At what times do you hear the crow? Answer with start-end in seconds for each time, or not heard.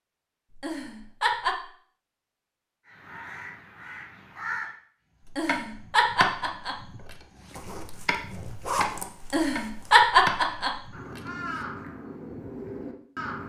2.9-4.8, 10.9-13.4.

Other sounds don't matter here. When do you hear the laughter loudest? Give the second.
10 s.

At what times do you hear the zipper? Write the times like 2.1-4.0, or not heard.
7.5-10.1.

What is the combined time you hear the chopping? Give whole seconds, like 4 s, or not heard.
6 s.